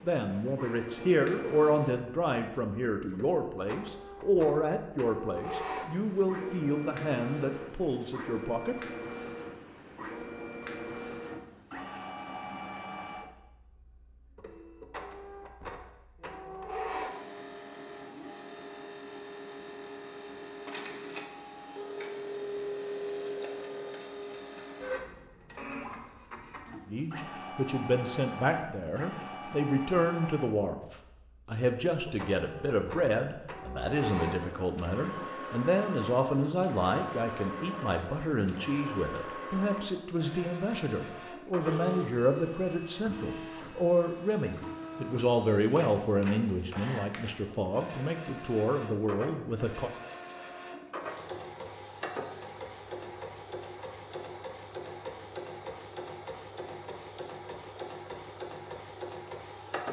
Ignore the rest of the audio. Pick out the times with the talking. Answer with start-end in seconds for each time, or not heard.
0.0-8.8, 26.9-49.9.